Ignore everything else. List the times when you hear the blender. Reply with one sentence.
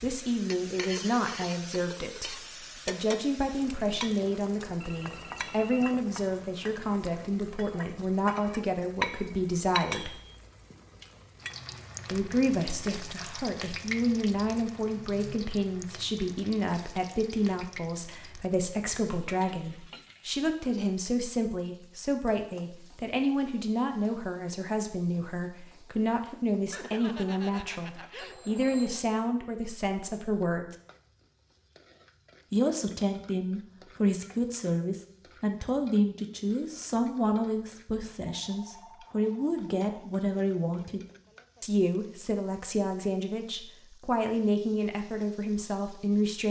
You can't hear the blender here.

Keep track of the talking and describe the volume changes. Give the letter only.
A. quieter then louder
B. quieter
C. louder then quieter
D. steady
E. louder
D.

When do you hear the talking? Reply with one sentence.
You can hear the talking from 0.0 to 10.2 s, from 12.1 to 30.8 s, from 32.5 to 41.0 s and from 41.6 to 46.4 s.